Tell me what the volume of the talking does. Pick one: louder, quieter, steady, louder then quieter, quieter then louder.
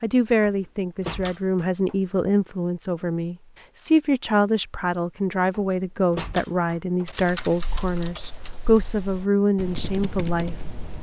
steady.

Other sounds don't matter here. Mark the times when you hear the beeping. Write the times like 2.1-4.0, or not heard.
not heard.